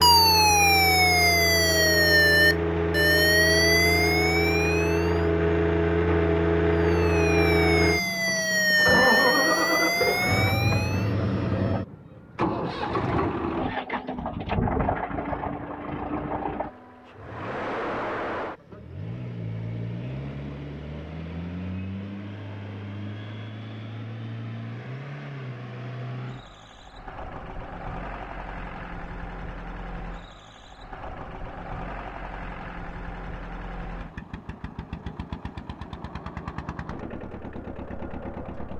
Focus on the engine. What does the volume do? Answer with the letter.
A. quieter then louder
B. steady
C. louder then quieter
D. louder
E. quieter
E.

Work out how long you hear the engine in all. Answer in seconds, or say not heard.
39 s.